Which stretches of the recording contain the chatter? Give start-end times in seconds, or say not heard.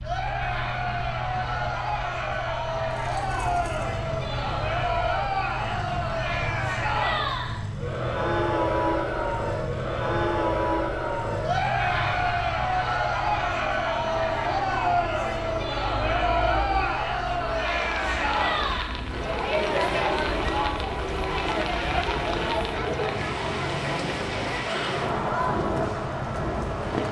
0.0-27.0.